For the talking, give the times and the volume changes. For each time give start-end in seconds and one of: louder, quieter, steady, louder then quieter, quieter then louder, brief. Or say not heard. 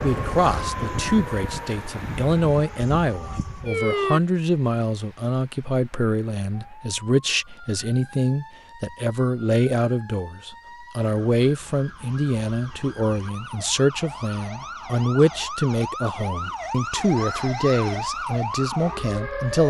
0.0-19.6 steady.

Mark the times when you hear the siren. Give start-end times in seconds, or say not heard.
0.0-4.2, 6.5-19.6.